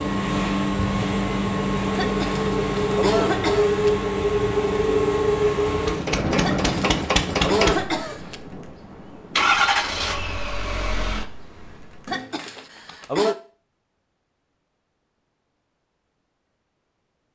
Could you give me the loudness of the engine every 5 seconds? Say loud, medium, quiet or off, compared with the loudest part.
loud, loud, medium, off.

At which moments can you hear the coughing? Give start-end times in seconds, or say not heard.
1.9-3.9, 6.4-8.3, 12.1-13.3.